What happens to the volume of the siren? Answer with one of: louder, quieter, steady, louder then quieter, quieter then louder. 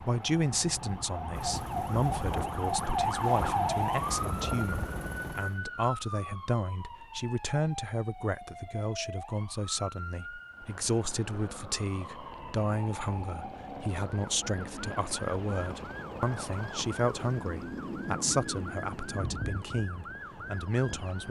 quieter.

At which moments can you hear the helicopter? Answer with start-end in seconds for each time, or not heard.
0.1-5.6, 10.5-21.2.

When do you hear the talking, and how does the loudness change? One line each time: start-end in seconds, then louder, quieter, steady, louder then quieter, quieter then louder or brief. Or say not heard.
0.0-21.2 steady.